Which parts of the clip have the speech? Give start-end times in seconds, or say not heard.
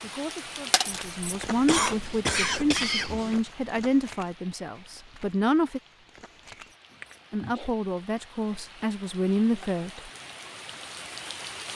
0.0-5.8, 7.3-10.1.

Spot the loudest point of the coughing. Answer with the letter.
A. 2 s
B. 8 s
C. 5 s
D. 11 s
A.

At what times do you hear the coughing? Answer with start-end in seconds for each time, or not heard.
1.6-3.4, 7.0-7.7.